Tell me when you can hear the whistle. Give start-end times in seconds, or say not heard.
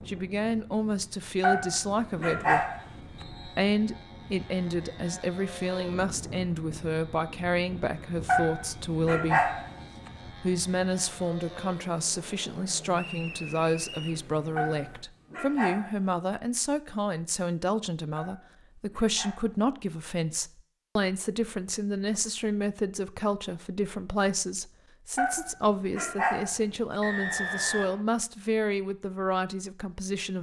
3.1-3.6, 12.9-14.2, 27.0-28.0.